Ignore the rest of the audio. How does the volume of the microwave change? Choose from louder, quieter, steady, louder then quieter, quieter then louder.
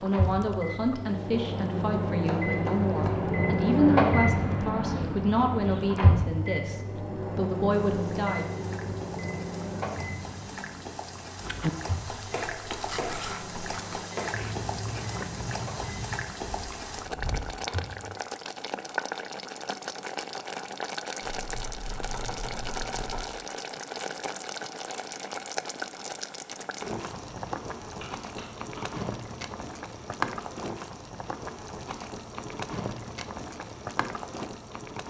quieter.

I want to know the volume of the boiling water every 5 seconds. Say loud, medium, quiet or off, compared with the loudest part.
quiet, quiet, loud, loud, loud, loud, loud.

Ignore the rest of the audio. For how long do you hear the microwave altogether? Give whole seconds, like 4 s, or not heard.
18 s.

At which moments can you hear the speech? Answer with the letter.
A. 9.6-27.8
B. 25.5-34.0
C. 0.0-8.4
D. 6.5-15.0
C.